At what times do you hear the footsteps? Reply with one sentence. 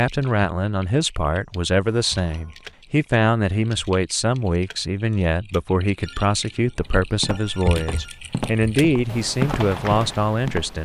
You can hear the footsteps from 6.8 to 10.7 s.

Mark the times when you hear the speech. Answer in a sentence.
You can hear the speech from 0.0 to 10.7 s.